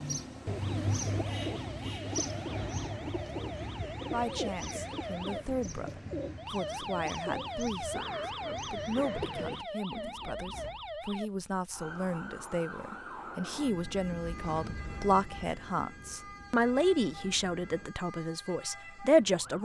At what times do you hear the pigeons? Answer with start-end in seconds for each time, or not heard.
0.0-10.8.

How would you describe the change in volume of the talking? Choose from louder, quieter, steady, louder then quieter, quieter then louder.
louder.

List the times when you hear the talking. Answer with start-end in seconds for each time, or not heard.
4.0-19.6.